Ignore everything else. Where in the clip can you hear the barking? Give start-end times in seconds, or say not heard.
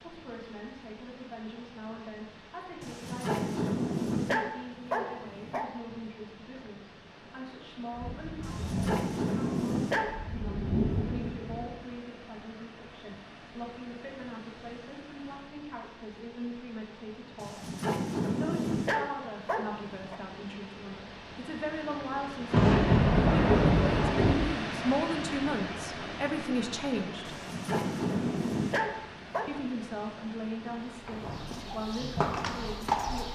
2.8-5.7, 8.4-10.2, 17.4-20.2, 27.2-29.5.